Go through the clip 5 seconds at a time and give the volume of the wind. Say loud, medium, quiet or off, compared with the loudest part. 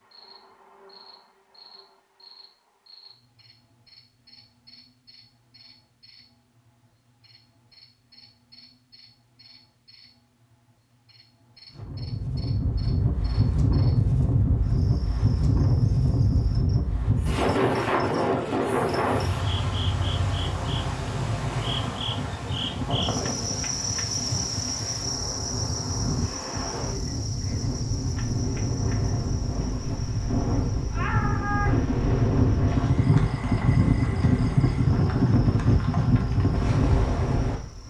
off, off, loud, loud, medium, medium, loud, loud.